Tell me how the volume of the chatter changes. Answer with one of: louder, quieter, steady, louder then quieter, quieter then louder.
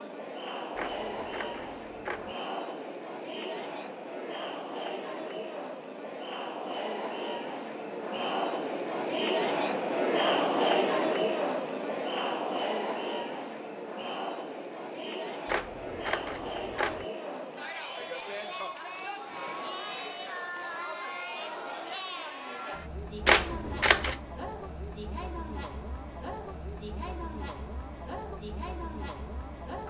louder then quieter.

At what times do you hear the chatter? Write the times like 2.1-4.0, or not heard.
0.0-29.8.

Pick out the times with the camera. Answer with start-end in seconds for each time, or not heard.
0.8-2.3, 15.4-17.1, 23.2-24.1.